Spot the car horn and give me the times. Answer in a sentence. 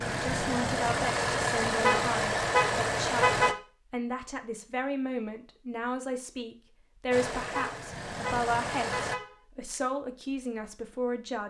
You can hear the car horn from 1.8 to 3.6 s and from 7.5 to 9.3 s.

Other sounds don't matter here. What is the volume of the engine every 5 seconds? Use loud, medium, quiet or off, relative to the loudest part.
loud, medium, off.